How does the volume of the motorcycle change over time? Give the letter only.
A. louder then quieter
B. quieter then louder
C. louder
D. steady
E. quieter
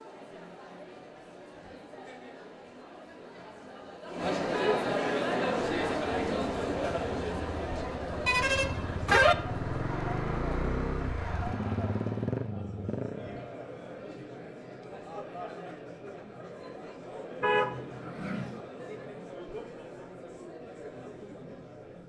C.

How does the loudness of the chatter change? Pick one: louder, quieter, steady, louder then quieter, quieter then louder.
louder then quieter.